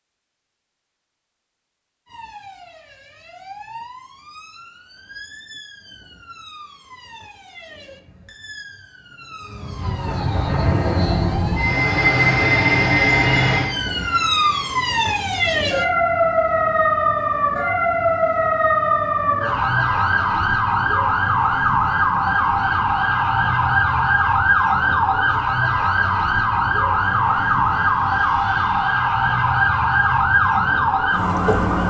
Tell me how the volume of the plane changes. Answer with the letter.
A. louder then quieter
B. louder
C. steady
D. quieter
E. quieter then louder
D.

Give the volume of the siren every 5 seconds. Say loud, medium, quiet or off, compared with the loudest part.
quiet, quiet, medium, loud, loud, loud, loud.